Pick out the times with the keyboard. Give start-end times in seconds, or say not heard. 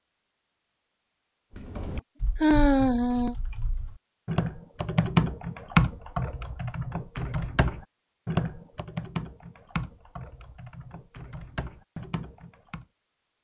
1.6-12.8.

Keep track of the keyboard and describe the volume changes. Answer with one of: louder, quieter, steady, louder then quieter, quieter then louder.
louder then quieter.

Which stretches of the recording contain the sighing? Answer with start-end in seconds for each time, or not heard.
1.9-3.4.